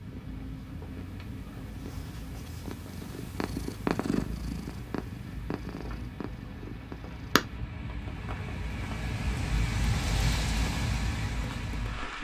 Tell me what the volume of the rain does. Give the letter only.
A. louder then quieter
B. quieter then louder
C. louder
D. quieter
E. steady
C.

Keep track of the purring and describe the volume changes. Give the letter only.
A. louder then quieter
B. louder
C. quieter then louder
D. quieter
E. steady
A.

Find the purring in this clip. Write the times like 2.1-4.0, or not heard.
0.0-7.6.